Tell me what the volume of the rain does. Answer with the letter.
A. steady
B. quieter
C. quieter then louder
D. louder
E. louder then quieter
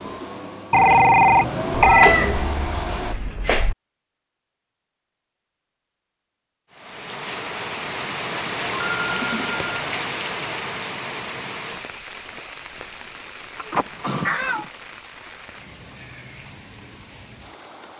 B.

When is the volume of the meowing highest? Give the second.
2 s.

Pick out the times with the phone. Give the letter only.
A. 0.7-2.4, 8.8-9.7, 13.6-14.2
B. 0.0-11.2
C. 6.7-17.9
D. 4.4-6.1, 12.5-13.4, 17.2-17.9
A.